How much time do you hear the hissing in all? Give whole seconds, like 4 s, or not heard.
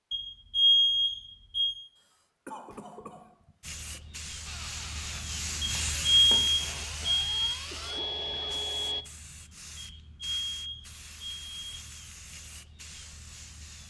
10 s.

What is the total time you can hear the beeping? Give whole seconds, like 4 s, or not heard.
6 s.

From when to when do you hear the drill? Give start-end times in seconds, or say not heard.
4.5-9.1.